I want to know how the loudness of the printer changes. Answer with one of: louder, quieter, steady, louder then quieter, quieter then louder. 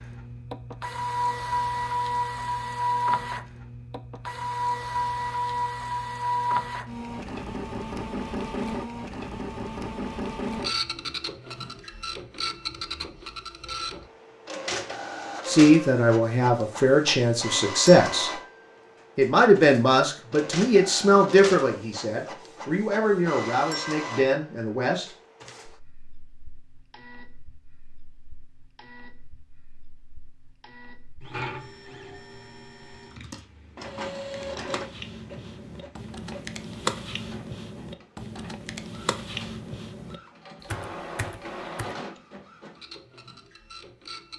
quieter.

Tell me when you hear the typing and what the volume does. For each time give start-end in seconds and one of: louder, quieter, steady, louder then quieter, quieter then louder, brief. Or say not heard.
33.0-42.0 louder then quieter.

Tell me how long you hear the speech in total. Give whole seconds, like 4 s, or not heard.
9 s.